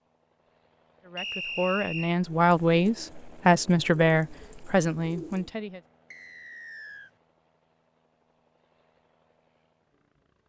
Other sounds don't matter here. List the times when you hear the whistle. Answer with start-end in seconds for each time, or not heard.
1.1-2.1, 6.1-7.1.